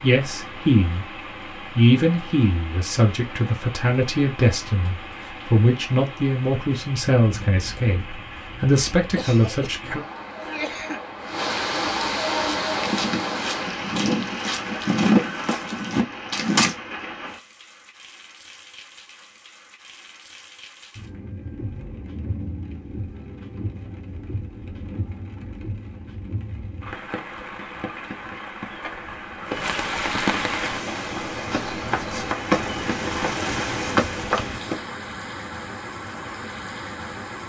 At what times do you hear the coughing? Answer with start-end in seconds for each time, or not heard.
9.1-11.0.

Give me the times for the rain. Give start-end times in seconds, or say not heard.
0.0-37.4.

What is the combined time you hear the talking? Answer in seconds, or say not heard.
9 s.